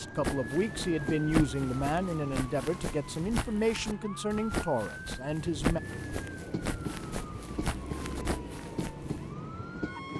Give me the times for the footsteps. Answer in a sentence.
You can hear the footsteps from 0.2 to 9.3 s.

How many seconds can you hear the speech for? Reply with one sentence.
You can hear the speech for 6 seconds altogether.